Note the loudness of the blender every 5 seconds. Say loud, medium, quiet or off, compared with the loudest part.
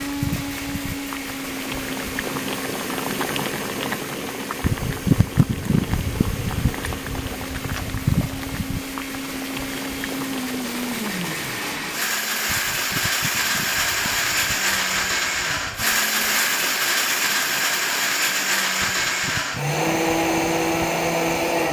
medium, quiet, loud, loud, loud.